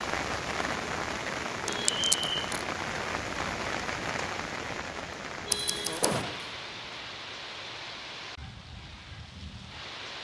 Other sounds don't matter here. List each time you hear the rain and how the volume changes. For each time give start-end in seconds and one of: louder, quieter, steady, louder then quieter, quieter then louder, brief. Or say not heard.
0.0-10.1 quieter.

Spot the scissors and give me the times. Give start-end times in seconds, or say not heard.
1.6-2.6, 5.5-6.2.